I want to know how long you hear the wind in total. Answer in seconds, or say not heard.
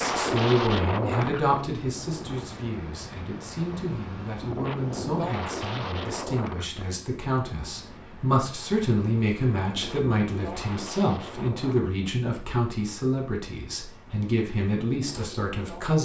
16 s.